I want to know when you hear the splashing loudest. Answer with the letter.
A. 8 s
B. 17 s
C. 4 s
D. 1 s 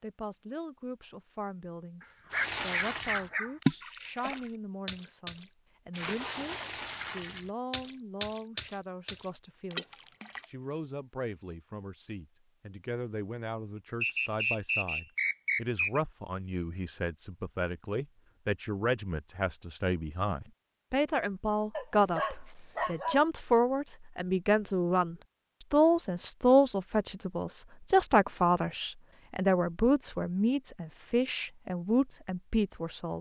C.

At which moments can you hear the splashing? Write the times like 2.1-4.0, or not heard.
2.3-10.4.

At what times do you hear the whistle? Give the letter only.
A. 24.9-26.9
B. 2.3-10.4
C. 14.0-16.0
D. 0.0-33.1
C.